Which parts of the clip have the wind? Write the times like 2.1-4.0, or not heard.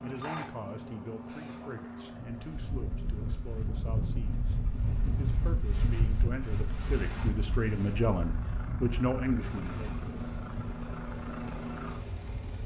2.1-12.6.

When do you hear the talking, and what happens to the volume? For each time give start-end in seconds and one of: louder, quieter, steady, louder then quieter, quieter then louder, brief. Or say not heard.
0.0-9.8 louder.